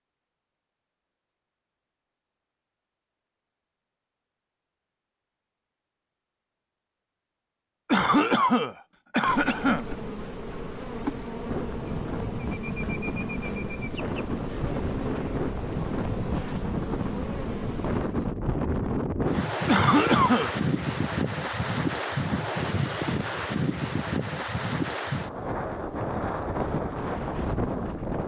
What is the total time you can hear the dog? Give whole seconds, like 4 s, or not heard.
not heard.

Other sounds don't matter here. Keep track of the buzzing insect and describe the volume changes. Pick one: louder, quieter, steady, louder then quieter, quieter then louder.
steady.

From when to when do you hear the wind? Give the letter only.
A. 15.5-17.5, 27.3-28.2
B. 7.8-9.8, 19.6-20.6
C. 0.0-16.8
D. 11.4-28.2
D.